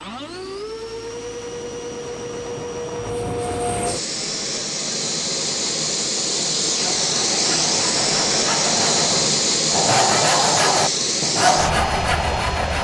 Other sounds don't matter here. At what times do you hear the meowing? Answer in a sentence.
You can't hear the meowing here.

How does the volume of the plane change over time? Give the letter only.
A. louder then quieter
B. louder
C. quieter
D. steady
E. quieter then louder
B.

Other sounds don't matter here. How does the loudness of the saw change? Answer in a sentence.
The volume of the saw goes up.